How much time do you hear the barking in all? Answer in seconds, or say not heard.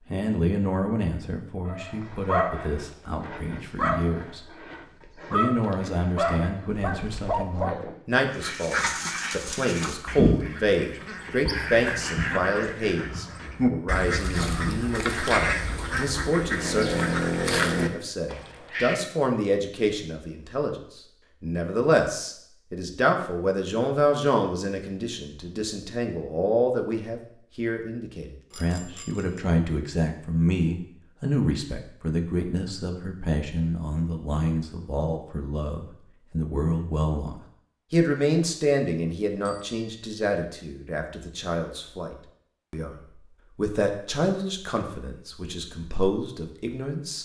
6 s.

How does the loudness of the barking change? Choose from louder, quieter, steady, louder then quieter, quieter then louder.
quieter then louder.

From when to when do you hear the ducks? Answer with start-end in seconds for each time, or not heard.
8.3-19.0.